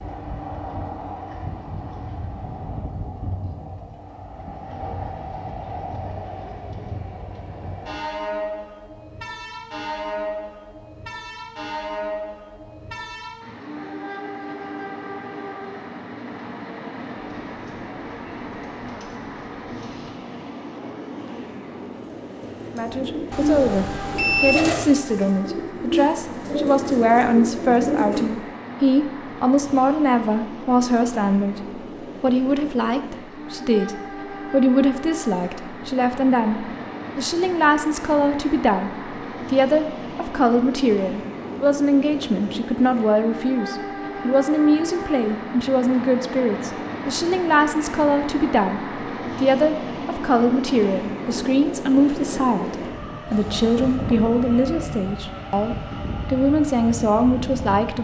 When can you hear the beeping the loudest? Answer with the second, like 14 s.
24 s.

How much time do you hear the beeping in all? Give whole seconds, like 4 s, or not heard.
2 s.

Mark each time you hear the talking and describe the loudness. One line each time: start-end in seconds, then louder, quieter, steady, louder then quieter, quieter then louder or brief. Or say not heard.
22.7-57.9 steady.